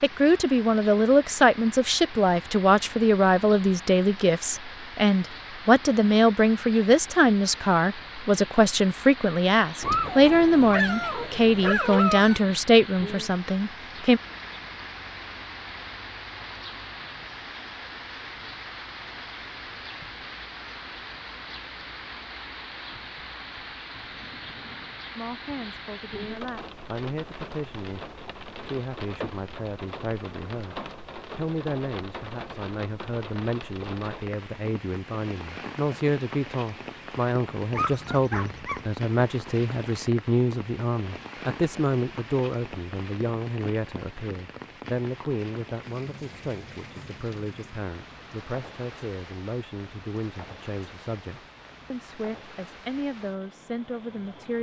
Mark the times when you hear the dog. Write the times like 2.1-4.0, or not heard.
9.8-12.4, 37.7-38.9.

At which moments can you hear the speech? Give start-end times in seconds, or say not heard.
0.0-14.2, 25.1-30.8, 31.4-54.5.